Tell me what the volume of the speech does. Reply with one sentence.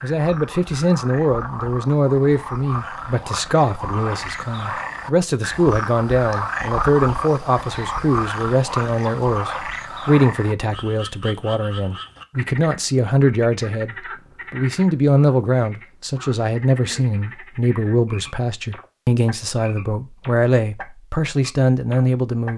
The loudness of the speech stays about the same.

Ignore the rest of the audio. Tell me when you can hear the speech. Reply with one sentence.
You can hear the speech from 0.0 to 22.5 s.